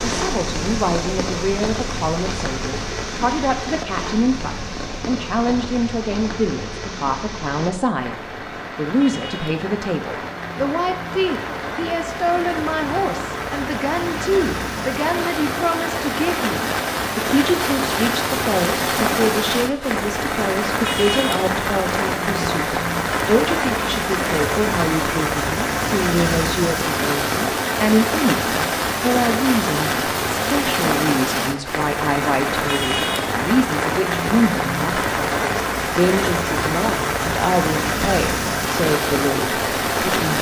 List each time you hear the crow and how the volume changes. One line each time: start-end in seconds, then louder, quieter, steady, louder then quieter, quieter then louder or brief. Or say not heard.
not heard.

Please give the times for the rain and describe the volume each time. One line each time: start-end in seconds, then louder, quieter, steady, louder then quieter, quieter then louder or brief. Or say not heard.
0.0-40.3 louder.